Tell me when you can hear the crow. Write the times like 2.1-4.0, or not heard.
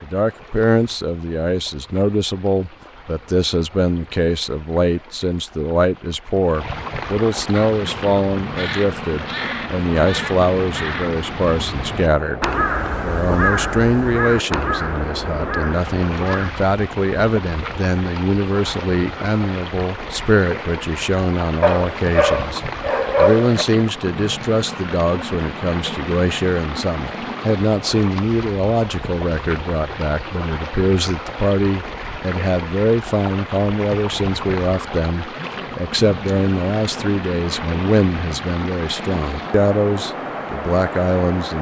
7.5-16.6.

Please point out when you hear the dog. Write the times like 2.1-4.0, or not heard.
21.6-23.6.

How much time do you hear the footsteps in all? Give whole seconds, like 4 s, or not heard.
not heard.